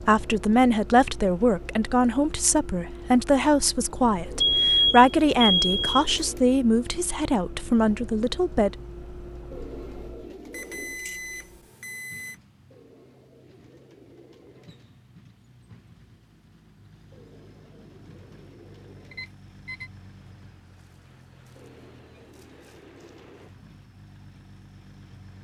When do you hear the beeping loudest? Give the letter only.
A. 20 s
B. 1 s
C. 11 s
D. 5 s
D.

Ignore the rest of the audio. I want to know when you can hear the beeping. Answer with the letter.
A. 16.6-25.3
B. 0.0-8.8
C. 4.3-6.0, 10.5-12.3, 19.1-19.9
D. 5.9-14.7
C.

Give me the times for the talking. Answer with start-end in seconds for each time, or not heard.
0.0-8.8.